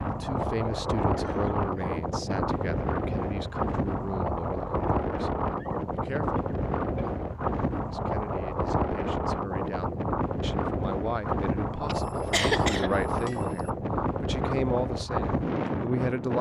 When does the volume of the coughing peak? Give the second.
13 s.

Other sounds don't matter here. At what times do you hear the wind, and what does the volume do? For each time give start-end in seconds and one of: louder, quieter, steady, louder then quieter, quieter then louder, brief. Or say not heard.
0.0-16.3 steady.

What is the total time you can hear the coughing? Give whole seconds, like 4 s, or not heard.
4 s.